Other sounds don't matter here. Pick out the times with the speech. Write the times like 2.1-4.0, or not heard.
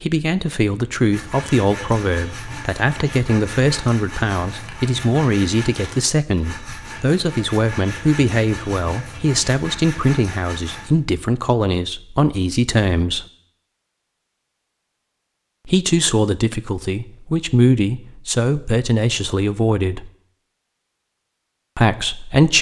0.0-13.2, 15.7-20.1, 21.8-22.5.